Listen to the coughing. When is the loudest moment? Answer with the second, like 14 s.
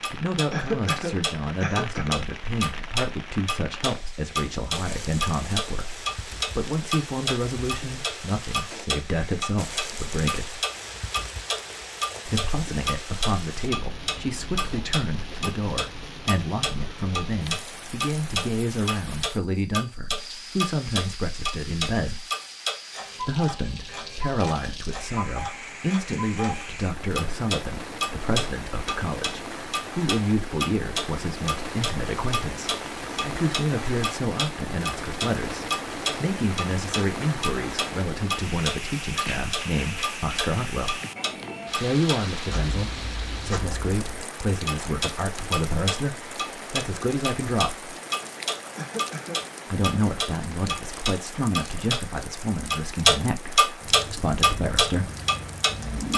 1 s.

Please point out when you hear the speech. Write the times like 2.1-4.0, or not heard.
0.1-10.6, 12.2-22.2, 23.2-41.0, 41.8-47.9, 49.7-55.1.